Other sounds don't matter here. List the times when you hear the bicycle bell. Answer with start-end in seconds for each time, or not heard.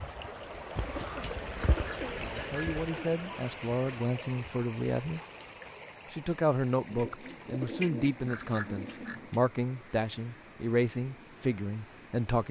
1.6-2.9, 8.3-9.2.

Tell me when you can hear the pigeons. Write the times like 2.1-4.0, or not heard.
0.8-2.9, 6.9-9.4.